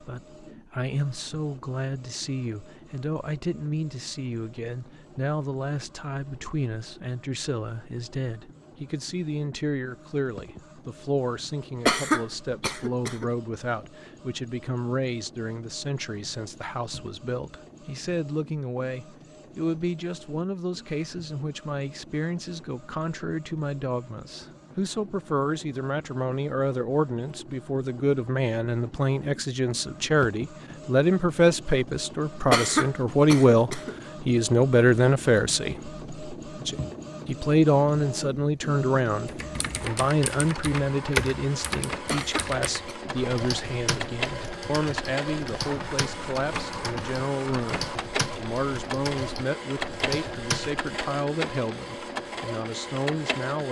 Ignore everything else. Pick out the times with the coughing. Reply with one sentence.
You can hear the coughing from 11.8 to 13.2 s, from 32.5 to 34.0 s and from 42.0 to 43.0 s.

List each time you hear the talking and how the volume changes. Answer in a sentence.
The talking can be heard from 0.0 to 53.6 s, getting louder then quieter.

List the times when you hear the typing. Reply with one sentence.
You can hear the typing from 39.2 to 50.8 s.